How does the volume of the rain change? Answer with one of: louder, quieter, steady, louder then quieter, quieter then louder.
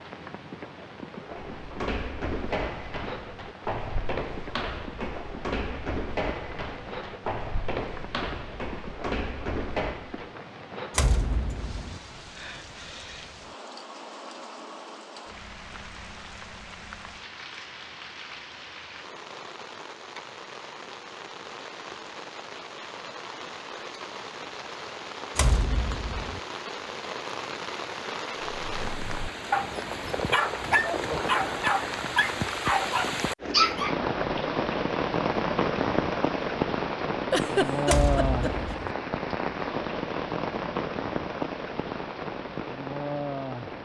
louder.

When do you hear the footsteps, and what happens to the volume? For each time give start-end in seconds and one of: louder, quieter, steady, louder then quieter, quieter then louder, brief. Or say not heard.
1.4-10.3 steady.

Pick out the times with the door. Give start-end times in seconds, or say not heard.
10.9-12.0, 25.4-26.4, 37.9-38.9.